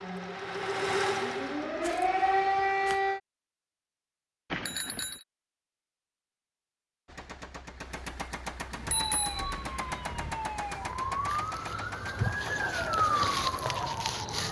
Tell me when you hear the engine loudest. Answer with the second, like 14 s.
1 s.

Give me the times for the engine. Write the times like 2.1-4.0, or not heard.
0.0-3.0, 7.0-14.4.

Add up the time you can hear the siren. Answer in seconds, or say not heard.
9 s.